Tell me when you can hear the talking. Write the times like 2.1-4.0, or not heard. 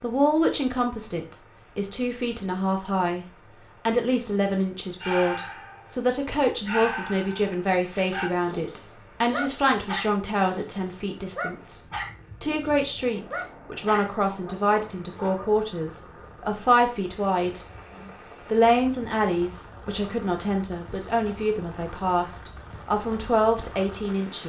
0.0-3.2, 3.9-11.8, 12.4-17.6, 18.4-24.4.